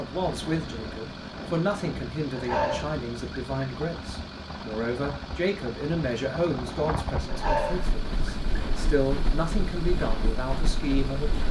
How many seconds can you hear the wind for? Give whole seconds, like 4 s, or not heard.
11 s.